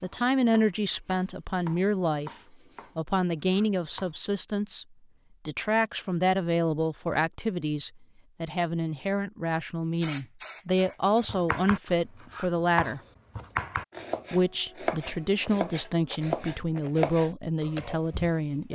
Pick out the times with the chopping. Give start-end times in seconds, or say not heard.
0.0-4.2, 11.2-18.6.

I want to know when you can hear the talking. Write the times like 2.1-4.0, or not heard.
0.0-2.3, 3.0-4.8, 5.5-13.0, 14.3-18.6.